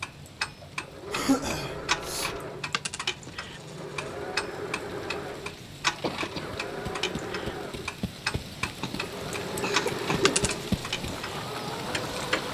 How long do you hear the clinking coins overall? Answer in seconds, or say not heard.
2 s.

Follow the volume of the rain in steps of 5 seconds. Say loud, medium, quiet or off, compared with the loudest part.
quiet, medium, loud.